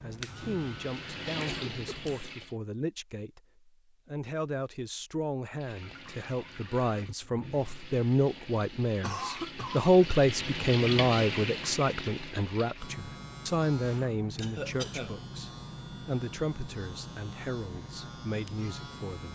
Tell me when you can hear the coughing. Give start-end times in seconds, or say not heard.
1.4-2.5, 9.0-9.9, 14.4-15.2.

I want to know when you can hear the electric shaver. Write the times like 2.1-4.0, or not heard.
0.0-2.2, 12.8-19.2.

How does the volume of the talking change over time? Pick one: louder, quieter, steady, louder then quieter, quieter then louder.
louder then quieter.